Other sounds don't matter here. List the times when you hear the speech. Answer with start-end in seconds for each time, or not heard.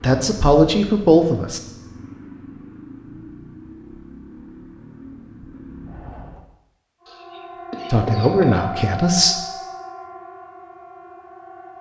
0.0-1.6, 7.9-9.4.